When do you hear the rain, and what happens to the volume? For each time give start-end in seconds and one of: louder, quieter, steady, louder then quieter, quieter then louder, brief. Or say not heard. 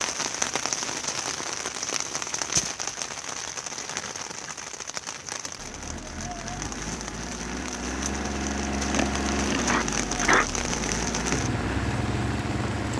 0.0-12.9 quieter then louder.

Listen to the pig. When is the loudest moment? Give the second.
10 s.